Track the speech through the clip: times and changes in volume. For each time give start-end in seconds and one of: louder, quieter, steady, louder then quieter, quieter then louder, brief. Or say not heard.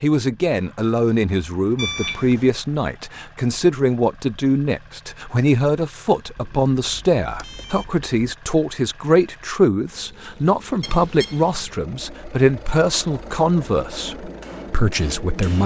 0.0-15.6 steady.